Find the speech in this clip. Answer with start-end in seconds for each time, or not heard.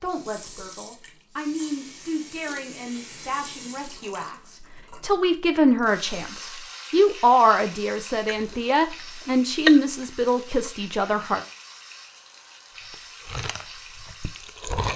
0.0-11.4.